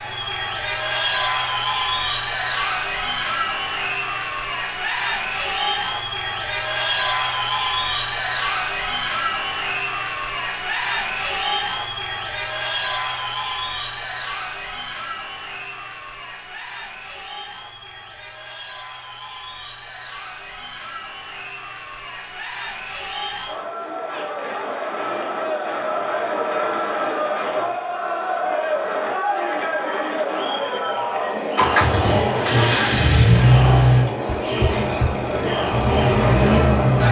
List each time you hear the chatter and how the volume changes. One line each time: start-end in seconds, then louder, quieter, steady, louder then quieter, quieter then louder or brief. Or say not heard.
0.0-37.0 quieter then louder.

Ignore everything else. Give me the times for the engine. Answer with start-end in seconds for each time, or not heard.
31.6-37.0.